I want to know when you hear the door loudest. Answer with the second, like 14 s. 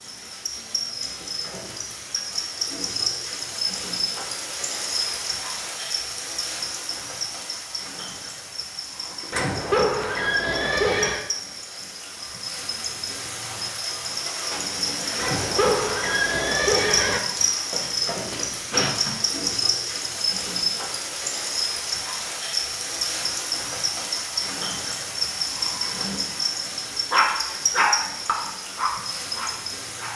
19 s.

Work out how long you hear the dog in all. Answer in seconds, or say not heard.
3 s.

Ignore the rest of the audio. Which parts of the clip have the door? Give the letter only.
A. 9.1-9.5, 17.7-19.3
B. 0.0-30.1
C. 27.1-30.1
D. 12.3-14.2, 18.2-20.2
A.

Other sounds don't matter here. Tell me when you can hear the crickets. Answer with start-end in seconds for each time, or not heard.
0.0-30.1.